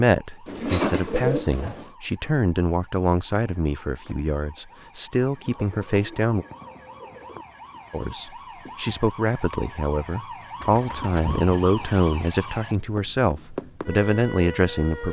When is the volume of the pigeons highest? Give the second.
1 s.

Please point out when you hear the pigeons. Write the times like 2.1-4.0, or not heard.
0.5-1.9, 5.5-7.5, 10.6-12.1.